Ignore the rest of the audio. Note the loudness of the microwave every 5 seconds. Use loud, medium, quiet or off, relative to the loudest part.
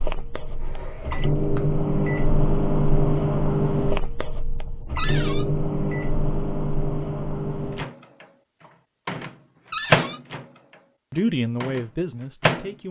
loud, loud, medium.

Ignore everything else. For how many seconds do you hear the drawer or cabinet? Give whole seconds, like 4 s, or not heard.
2 s.